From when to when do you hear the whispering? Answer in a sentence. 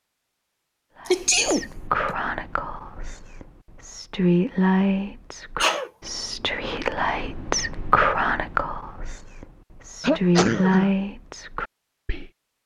The whispering can be heard from 1.0 to 12.3 s.